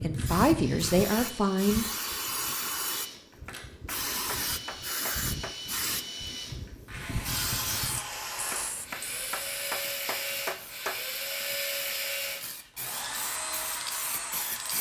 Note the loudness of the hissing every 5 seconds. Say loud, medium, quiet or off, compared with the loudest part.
loud, loud, medium.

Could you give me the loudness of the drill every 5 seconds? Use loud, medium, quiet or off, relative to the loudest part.
medium, loud, loud.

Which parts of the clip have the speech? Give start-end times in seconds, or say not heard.
0.0-1.9.